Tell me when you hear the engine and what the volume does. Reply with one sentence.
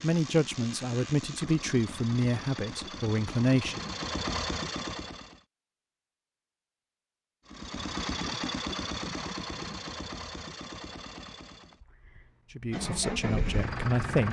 The engine can be heard from 0.0 to 5.5 s, getting louder; and from 7.5 to 14.2 s, getting quieter then louder.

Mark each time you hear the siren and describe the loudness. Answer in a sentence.
You can't hear the siren here.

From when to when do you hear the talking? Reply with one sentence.
The talking can be heard from 0.0 to 3.8 s and from 12.6 to 14.2 s.